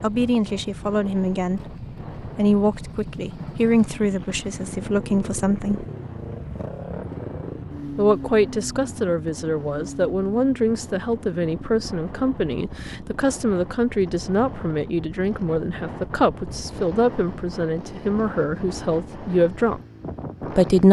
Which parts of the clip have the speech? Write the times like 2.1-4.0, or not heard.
0.0-5.8, 8.0-19.8, 20.4-20.8.